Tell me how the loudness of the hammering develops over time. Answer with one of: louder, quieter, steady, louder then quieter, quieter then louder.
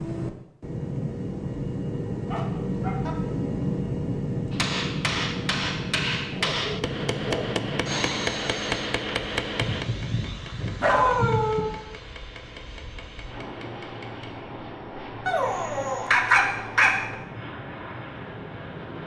quieter.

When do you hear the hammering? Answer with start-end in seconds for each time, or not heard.
4.5-14.3.